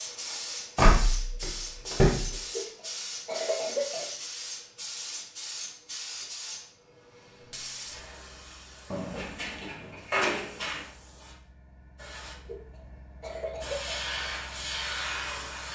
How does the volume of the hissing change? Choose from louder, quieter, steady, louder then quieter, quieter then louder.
quieter then louder.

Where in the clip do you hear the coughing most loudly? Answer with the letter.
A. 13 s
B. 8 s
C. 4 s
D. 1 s
C.